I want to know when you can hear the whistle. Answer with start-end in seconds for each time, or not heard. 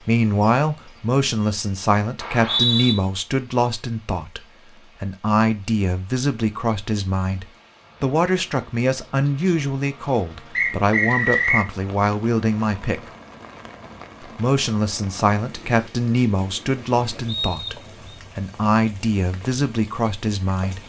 2.2-3.0, 10.6-11.7, 17.2-18.0.